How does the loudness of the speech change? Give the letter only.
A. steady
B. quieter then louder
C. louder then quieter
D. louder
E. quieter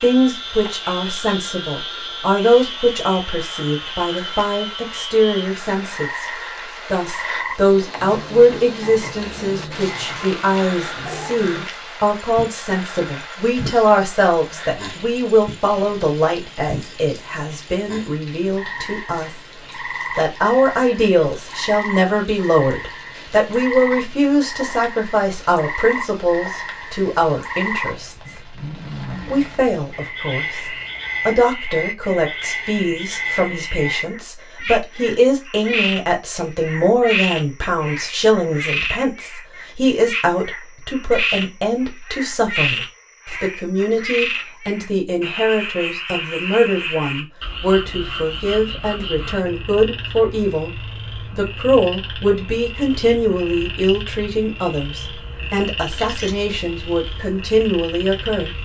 A.